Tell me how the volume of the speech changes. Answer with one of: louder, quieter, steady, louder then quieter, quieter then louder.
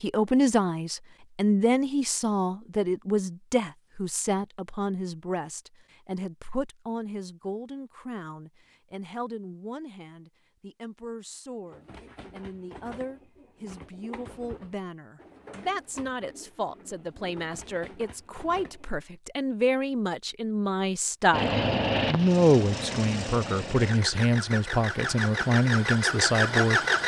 quieter then louder.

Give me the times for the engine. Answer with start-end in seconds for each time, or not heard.
21.3-27.0.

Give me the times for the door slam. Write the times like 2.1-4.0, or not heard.
not heard.